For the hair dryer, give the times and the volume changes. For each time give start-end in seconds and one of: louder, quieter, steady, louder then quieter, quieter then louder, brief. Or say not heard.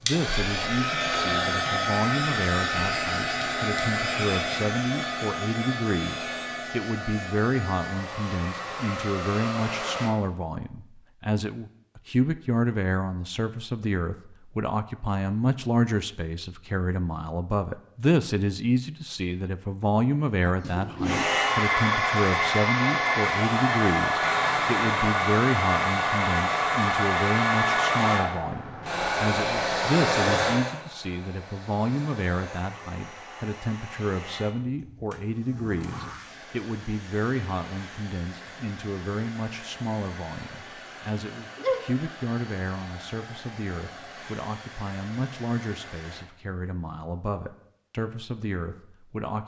0.0-10.2 quieter
21.0-46.2 quieter.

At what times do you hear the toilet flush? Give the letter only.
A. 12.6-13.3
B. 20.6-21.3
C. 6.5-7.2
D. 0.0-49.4
B.